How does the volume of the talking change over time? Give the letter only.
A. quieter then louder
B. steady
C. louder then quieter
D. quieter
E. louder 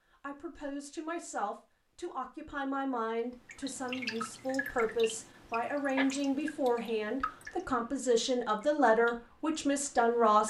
E.